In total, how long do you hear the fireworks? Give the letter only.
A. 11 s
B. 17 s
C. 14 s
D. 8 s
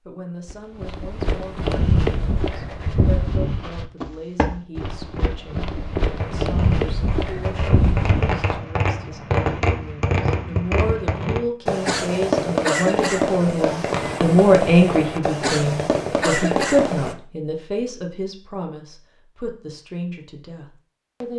A.